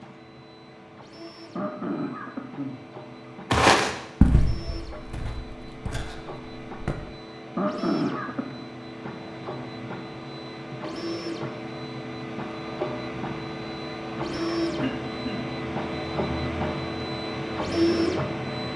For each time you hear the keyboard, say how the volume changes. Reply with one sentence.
The keyboard can't be heard in this clip.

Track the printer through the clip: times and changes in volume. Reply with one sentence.
The printer can be heard from 0.0 to 18.7 s, getting louder.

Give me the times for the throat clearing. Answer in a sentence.
The throat clearing can be heard from 1.6 to 2.9 s, from 7.5 to 8.7 s and from 14.8 to 15.5 s.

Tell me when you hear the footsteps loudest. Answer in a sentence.
The loudest moment of the footsteps is at 4 seconds.